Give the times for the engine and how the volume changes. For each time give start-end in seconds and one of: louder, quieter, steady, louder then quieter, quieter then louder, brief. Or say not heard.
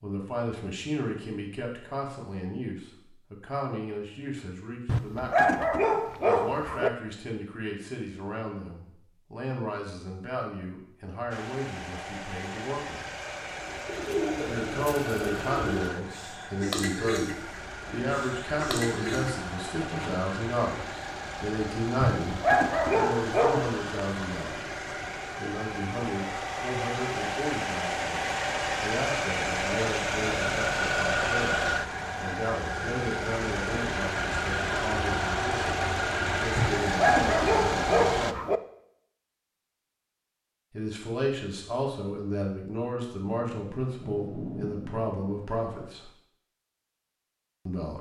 11.3-38.4 louder.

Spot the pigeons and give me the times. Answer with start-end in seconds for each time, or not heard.
13.6-20.3.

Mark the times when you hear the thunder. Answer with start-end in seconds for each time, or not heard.
43.5-45.9.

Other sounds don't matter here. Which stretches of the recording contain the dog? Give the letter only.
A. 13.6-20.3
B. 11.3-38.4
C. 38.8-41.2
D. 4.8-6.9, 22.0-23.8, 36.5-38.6
D.